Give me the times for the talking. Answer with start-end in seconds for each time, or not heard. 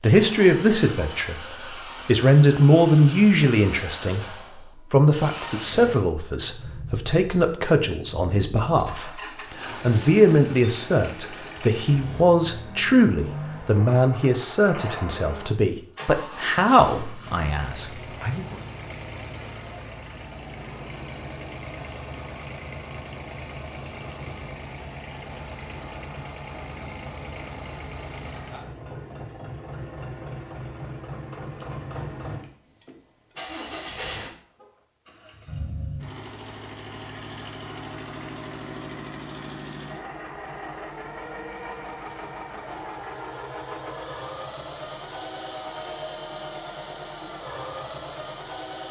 0.0-18.6.